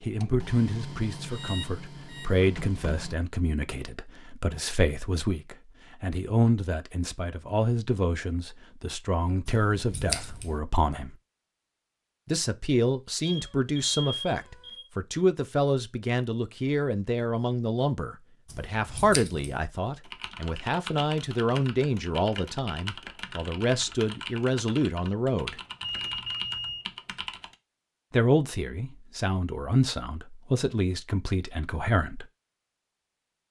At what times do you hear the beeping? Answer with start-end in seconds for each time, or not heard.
1.3-2.3, 13.2-14.9, 25.8-26.9.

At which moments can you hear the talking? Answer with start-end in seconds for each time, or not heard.
0.0-11.2, 12.2-25.6, 28.1-32.2.